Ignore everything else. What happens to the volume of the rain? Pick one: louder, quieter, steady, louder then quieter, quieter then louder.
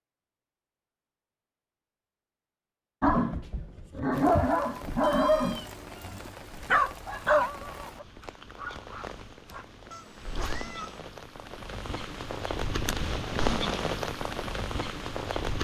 louder.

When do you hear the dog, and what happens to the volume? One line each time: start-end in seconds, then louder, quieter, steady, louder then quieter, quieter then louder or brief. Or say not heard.
3.0-9.7 quieter.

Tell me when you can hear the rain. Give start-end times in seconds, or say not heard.
4.1-15.5.